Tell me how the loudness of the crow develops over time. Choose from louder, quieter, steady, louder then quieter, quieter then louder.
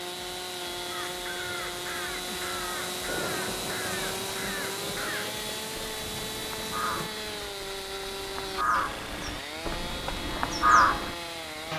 louder.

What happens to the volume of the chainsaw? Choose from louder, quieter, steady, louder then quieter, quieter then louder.
steady.